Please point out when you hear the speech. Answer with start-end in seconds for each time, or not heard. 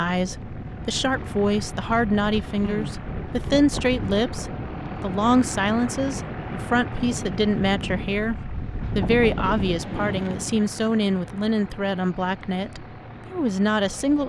0.0-14.2.